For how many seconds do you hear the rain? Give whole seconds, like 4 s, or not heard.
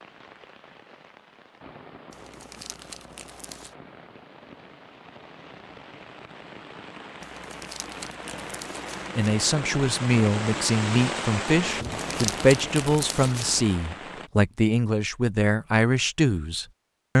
14 s.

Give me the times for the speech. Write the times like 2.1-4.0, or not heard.
9.2-17.1.